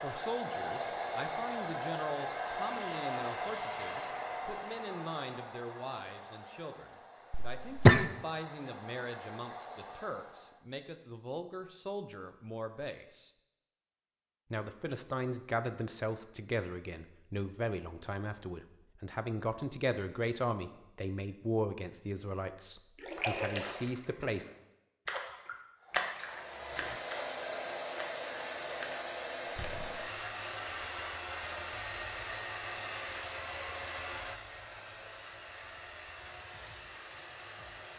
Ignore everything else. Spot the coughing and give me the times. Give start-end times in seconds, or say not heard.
7.3-8.1.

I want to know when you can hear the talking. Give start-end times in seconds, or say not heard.
0.0-13.3, 14.5-24.4.